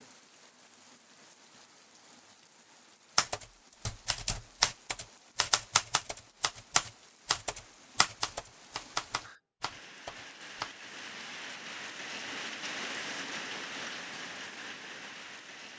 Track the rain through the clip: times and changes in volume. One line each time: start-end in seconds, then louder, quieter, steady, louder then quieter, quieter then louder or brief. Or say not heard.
0.0-15.7 louder.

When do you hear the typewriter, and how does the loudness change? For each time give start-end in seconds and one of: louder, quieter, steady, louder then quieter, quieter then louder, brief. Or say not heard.
3.1-10.7 quieter.